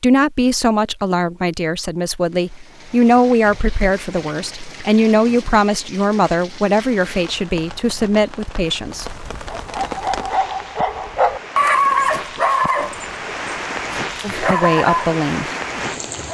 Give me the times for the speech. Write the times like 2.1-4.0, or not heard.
0.0-9.2, 14.2-15.4.